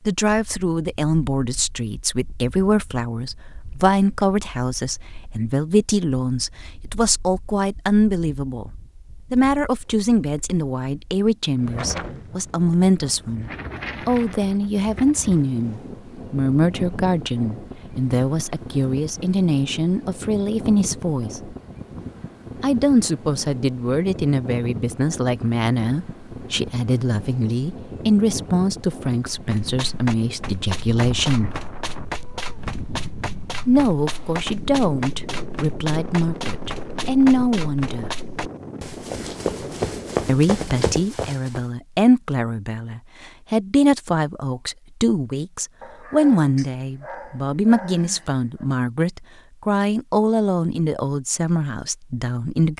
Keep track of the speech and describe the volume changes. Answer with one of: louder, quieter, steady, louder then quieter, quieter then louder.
steady.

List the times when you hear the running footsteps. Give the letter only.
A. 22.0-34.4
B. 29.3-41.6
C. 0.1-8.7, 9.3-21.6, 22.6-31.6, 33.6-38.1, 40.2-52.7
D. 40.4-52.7
B.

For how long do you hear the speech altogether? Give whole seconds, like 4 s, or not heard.
47 s.